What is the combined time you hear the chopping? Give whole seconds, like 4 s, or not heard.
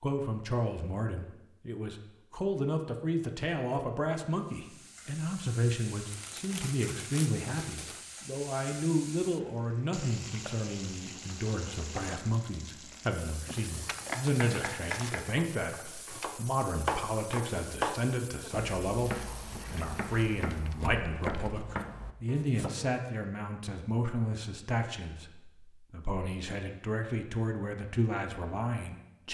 9 s.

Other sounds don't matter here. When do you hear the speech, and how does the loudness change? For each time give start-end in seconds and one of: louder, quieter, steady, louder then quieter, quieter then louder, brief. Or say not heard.
0.0-29.2 steady.